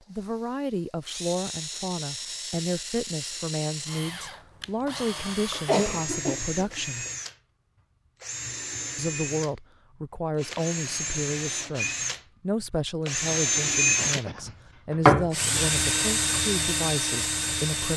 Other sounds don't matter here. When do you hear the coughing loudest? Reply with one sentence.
The volume of the coughing peaks at 6 seconds.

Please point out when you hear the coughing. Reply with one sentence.
The coughing can be heard from 5.5 to 6.7 s and from 13.9 to 14.6 s.